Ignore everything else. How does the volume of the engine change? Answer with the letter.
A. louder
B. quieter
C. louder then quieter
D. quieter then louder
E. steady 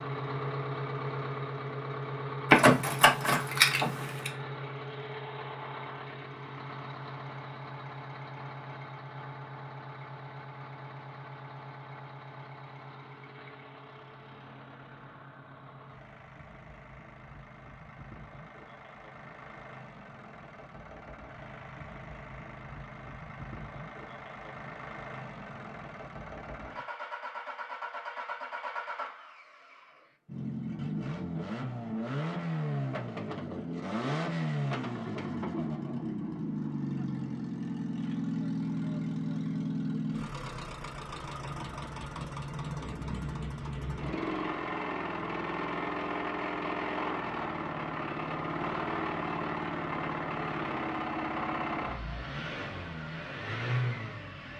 D.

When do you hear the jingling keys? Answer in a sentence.
The jingling keys can be heard from 2.5 to 4.3 s.